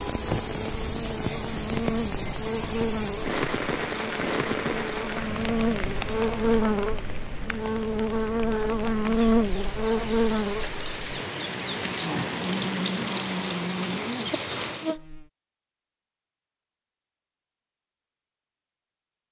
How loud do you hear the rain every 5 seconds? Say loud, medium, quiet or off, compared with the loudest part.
loud, medium, loud, off.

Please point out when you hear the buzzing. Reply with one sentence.
You can hear the buzzing from 0.2 to 15.2 s.